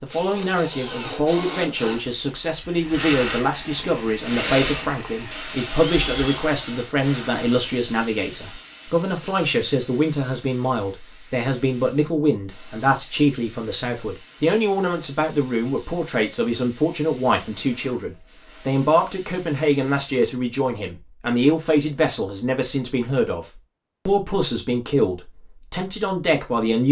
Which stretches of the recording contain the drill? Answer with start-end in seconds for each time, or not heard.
0.1-6.5.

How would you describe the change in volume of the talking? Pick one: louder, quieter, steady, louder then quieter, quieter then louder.
steady.